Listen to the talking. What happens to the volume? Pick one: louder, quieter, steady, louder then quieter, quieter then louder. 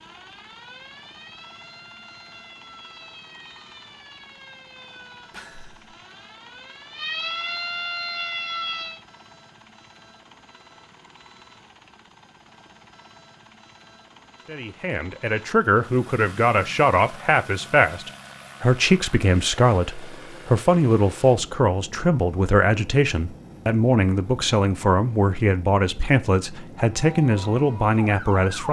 steady.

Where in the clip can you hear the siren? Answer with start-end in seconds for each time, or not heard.
0.0-9.0, 26.9-28.6.